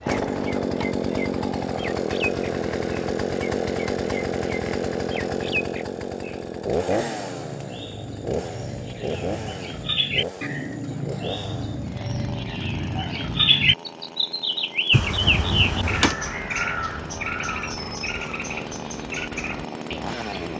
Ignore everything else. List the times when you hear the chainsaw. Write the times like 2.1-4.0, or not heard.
0.0-20.5.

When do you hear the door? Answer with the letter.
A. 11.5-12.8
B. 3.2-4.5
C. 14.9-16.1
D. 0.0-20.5
C.